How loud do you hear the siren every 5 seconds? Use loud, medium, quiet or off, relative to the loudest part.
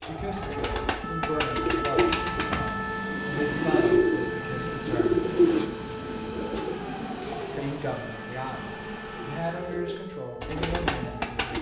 loud, medium, medium.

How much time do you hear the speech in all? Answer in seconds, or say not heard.
9 s.